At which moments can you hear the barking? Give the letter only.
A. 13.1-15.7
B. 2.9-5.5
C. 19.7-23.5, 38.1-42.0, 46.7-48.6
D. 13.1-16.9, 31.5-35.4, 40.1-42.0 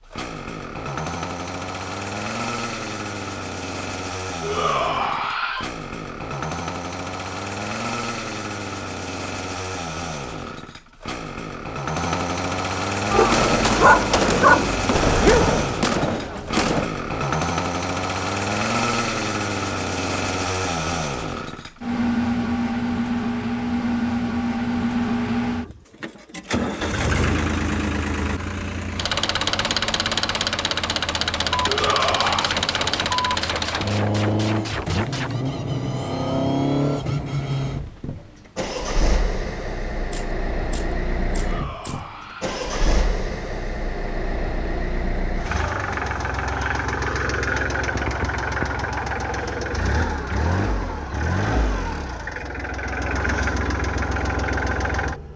A.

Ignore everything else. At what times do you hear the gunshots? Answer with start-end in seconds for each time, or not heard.
13.1-16.9, 31.5-35.4, 40.1-42.0.